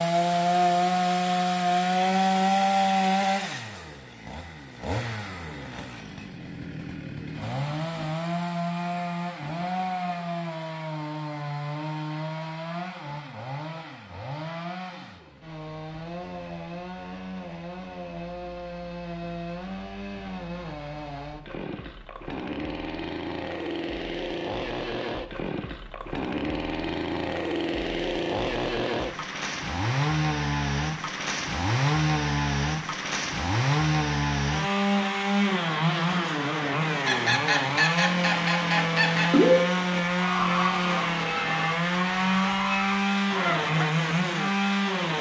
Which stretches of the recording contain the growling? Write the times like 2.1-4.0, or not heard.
not heard.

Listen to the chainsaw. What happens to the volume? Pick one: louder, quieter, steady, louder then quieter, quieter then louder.
quieter then louder.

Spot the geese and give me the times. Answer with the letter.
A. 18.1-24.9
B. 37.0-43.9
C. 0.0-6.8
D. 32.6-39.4
B.